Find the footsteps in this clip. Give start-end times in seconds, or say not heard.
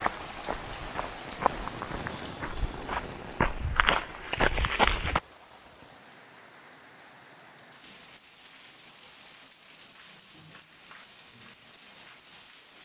0.0-5.2.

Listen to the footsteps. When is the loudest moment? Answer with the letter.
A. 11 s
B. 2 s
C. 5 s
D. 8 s
C.